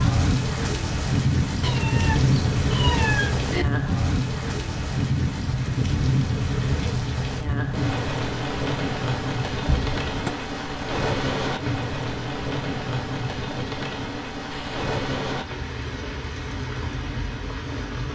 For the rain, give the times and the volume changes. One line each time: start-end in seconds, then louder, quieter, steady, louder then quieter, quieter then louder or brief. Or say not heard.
0.0-18.1 quieter.